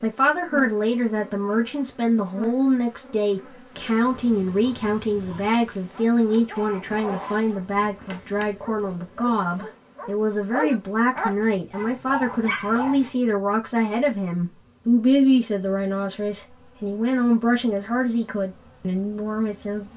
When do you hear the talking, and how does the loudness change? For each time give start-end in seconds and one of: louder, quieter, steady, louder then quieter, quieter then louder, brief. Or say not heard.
0.0-19.9 steady.